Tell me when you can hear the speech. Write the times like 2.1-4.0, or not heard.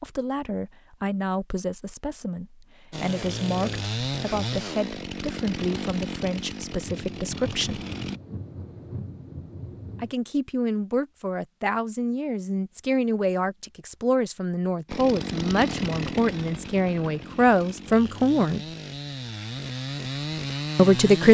0.0-7.8, 10.0-18.6, 20.8-21.2.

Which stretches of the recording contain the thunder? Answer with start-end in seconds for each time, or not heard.
6.8-10.2.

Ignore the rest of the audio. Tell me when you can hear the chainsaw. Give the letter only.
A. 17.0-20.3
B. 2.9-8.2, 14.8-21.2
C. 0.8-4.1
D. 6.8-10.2
B.